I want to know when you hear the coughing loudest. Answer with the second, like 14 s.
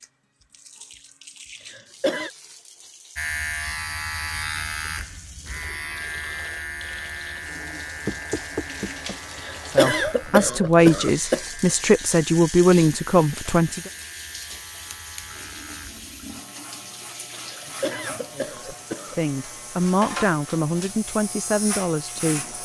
10 s.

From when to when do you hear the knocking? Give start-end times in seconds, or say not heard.
8.1-9.2.